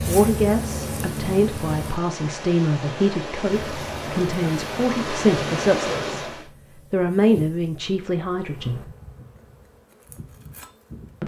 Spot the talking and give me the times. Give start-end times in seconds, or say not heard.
0.1-6.2, 6.9-8.8.